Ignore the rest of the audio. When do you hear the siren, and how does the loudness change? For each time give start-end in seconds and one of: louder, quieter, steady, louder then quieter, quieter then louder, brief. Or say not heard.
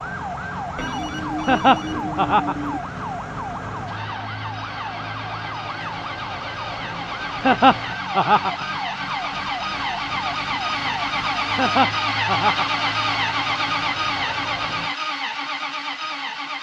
0.0-14.9 steady.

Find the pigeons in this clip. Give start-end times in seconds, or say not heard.
not heard.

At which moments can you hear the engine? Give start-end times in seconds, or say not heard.
0.0-16.5.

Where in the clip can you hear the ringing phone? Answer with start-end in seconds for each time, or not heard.
0.8-2.8.